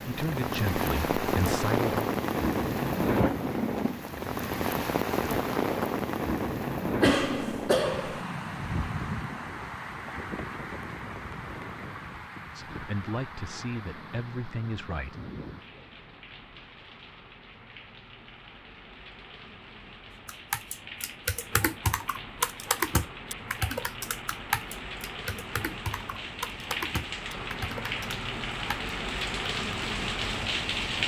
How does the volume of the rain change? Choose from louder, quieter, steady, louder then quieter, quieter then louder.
quieter then louder.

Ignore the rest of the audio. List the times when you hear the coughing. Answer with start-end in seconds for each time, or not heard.
7.0-8.2.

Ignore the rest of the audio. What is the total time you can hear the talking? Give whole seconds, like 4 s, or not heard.
5 s.